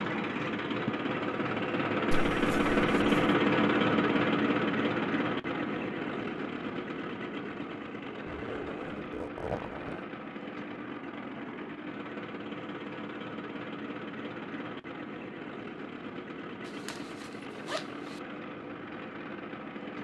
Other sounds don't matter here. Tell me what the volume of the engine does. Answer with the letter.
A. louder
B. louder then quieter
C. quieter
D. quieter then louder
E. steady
C.